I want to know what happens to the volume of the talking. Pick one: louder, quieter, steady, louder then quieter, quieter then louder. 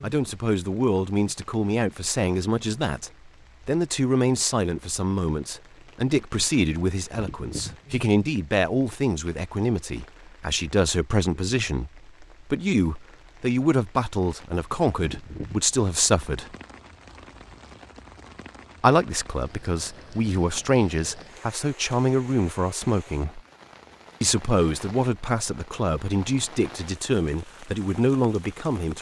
steady.